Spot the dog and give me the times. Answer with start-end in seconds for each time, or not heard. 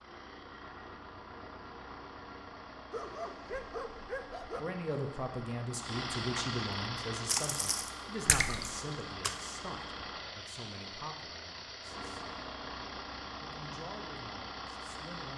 2.9-4.7.